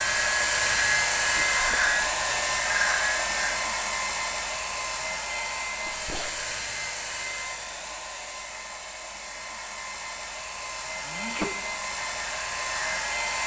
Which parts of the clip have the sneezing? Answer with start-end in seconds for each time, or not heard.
1.6-2.1, 5.8-6.5, 11.1-11.6.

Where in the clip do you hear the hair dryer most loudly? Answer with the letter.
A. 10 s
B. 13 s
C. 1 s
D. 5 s
C.